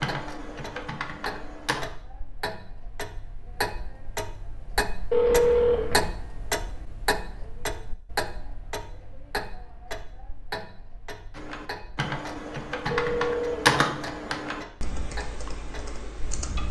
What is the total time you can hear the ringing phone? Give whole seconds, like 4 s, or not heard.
2 s.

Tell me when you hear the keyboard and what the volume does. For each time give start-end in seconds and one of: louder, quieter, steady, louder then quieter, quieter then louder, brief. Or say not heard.
0.0-1.9 brief
11.3-16.6 louder then quieter.